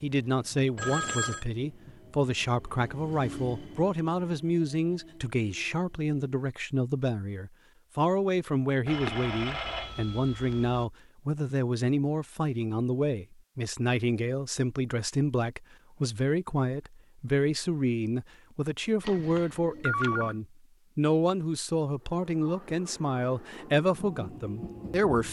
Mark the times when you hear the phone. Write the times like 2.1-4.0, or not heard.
0.8-1.4, 8.8-10.8, 19.0-20.4.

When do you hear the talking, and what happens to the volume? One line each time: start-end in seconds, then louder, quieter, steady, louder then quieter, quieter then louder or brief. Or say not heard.
0.0-25.2 steady.